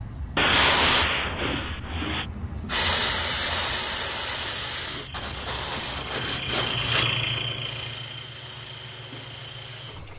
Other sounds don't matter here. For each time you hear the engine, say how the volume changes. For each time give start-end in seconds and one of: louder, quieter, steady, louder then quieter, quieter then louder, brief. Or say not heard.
4.5-10.1 louder then quieter.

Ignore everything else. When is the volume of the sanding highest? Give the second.
1 s.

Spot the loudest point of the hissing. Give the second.
3 s.